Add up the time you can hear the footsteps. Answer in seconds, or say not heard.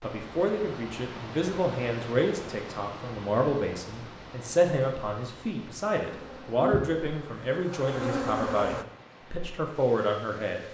not heard.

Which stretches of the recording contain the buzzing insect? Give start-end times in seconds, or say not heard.
6.0-8.8.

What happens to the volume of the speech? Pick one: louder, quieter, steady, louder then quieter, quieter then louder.
steady.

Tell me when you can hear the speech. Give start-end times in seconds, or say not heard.
0.0-10.6.